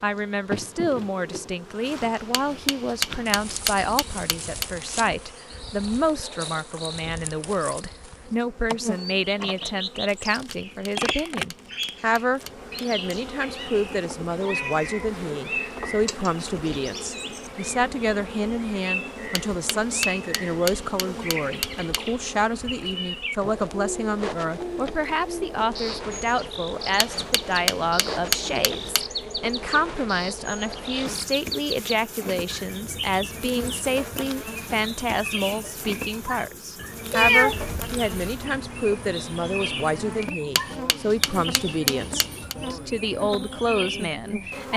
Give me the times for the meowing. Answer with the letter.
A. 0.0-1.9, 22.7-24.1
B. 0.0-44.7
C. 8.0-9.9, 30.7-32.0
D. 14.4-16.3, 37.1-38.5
D.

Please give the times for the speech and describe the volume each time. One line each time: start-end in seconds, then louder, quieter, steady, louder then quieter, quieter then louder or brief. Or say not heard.
0.0-44.7 steady.